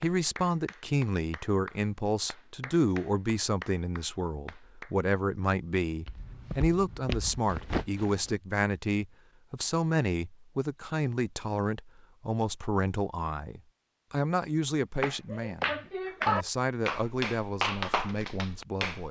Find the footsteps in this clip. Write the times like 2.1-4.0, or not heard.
6.0-8.3.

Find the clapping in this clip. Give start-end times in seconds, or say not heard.
0.0-5.0, 15.0-19.0.